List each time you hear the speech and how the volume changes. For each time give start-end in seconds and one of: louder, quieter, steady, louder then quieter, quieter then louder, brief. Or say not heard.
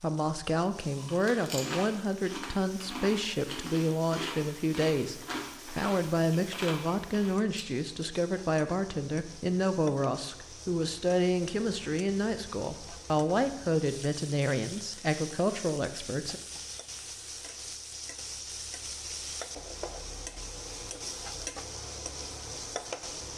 0.0-16.4 steady.